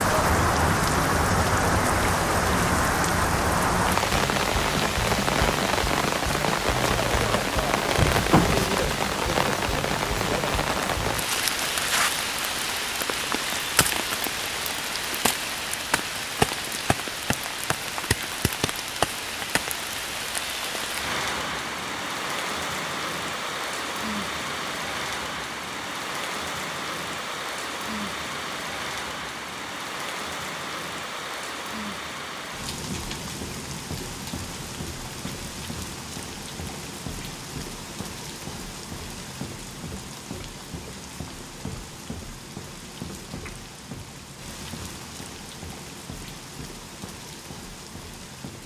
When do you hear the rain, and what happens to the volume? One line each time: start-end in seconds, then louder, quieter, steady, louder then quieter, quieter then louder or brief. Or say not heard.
0.0-48.6 quieter.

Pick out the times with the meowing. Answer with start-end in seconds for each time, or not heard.
7.8-8.8.